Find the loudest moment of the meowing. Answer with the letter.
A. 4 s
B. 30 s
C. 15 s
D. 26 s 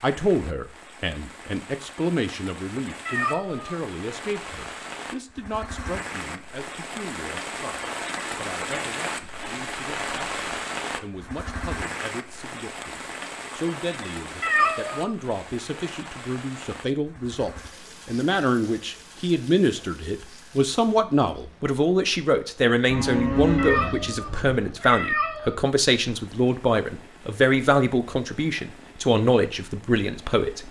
C.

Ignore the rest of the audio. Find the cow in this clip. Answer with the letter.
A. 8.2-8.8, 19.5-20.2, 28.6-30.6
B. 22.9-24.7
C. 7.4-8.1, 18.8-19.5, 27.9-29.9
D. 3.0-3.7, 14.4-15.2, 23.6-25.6
B.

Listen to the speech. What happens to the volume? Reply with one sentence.
The loudness of the speech goes down, then up.